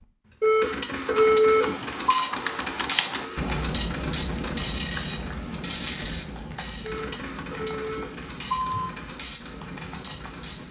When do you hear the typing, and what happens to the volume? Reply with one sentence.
The typing can be heard from 0.9 to 10.6 s, getting quieter.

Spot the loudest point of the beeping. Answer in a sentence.
The loudest moment of the beeping is at 1 second.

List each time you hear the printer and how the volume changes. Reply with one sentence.
You can hear the printer from 0.0 to 10.6 s, getting quieter.